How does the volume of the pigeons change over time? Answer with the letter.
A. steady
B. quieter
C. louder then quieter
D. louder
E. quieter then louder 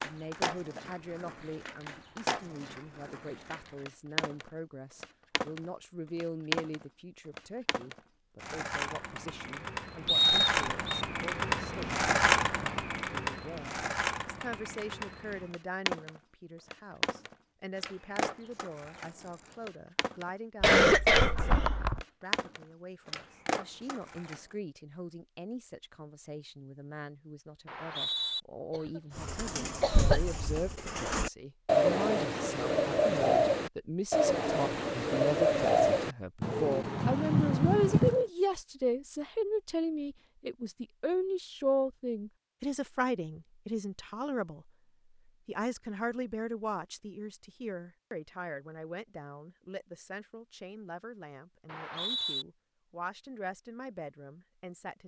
D.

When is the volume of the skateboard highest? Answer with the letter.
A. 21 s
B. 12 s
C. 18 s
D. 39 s
B.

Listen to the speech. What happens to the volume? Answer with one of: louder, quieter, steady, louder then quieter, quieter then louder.
louder then quieter.